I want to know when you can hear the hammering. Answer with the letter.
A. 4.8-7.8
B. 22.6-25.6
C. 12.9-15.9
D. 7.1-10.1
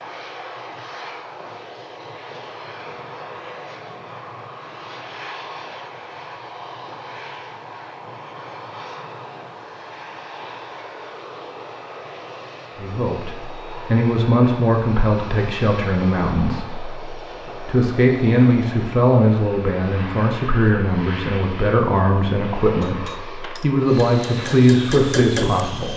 B.